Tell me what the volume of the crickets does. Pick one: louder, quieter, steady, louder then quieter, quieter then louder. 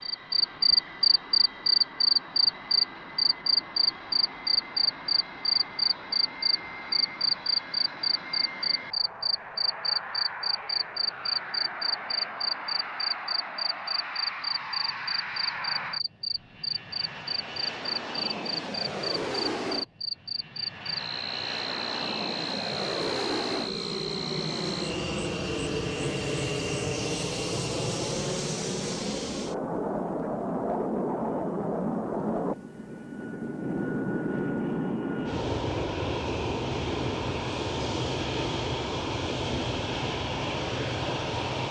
quieter.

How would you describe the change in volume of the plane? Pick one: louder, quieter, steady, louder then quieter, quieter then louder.
louder.